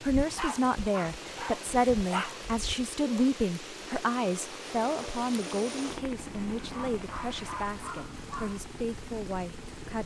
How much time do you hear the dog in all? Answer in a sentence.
The dog can be heard for 5 seconds in total.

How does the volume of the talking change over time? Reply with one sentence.
The loudness of the talking goes down.